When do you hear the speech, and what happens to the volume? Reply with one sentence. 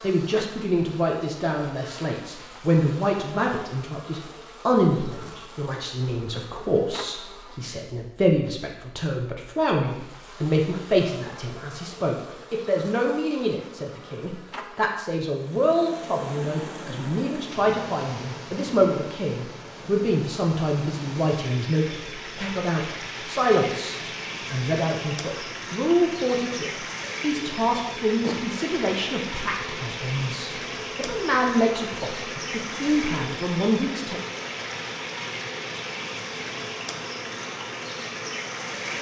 You can hear the speech from 0.0 to 34.2 s, at a steady volume.